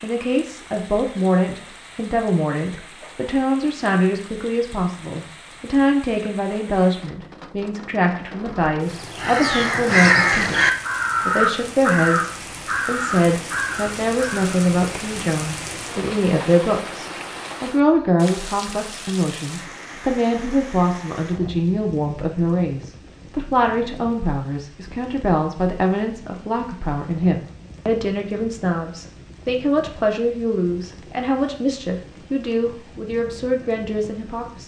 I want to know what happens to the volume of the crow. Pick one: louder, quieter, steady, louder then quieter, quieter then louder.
quieter.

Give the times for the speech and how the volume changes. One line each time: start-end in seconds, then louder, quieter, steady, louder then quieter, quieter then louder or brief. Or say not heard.
0.0-34.6 steady.